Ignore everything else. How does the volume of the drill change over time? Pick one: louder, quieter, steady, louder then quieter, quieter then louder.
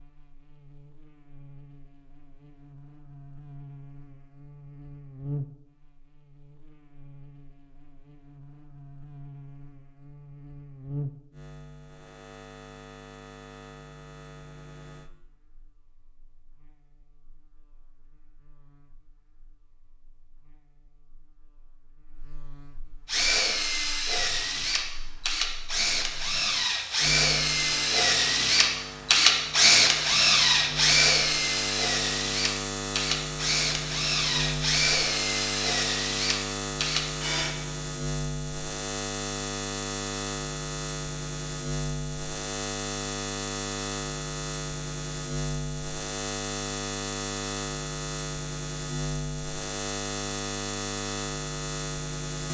louder then quieter.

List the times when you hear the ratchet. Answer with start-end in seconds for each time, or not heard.
not heard.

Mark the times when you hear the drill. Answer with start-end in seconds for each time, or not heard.
23.1-37.5.